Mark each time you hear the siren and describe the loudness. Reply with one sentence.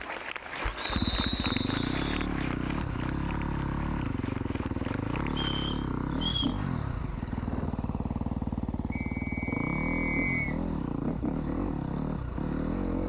The siren can't be heard in this clip.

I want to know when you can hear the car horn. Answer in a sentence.
The car horn can't be heard in this clip.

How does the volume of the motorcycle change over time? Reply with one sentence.
The volume of the motorcycle stays about the same.